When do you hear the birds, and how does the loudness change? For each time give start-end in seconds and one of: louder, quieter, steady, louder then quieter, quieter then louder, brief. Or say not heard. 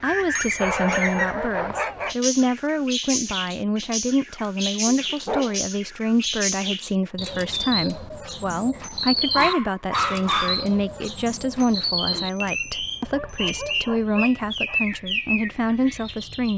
0.0-16.5 steady.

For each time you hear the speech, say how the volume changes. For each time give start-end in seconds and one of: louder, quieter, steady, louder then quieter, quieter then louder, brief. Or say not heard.
0.0-16.5 steady.